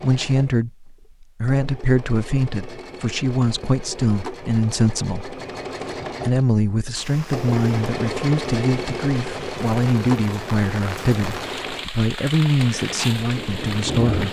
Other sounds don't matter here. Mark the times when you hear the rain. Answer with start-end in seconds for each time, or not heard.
6.9-14.2.